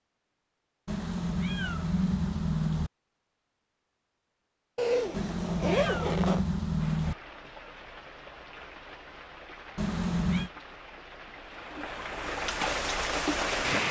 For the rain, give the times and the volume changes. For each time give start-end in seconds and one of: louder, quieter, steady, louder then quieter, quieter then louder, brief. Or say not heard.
6.8-13.8 louder.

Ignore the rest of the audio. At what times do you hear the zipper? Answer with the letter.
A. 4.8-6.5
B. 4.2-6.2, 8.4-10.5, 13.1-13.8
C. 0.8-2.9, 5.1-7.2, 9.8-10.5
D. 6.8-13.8
A.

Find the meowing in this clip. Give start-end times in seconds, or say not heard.
0.8-2.9, 5.1-7.2, 9.8-10.5.